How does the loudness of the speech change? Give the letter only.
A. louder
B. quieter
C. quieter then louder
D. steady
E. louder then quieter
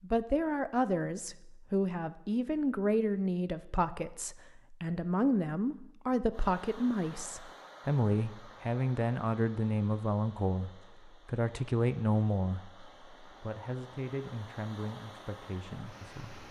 B.